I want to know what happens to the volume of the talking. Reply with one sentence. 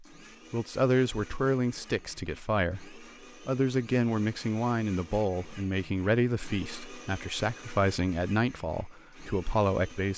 The loudness of the talking stays about the same.